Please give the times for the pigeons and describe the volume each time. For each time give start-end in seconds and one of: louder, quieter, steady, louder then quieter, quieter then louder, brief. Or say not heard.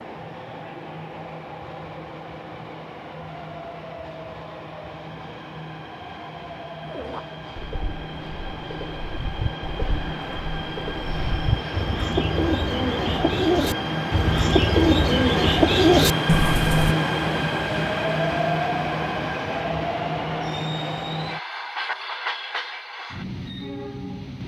6.8-16.9 louder.